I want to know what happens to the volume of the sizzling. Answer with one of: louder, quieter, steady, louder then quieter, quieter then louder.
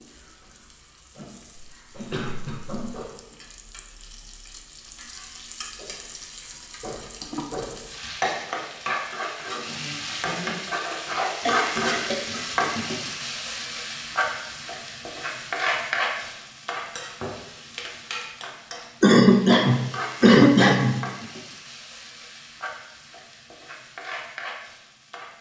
louder then quieter.